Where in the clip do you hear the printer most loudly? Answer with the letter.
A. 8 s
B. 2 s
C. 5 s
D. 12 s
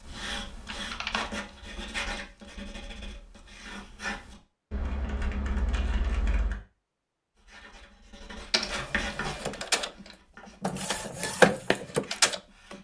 D.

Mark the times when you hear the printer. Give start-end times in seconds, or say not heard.
8.6-12.7.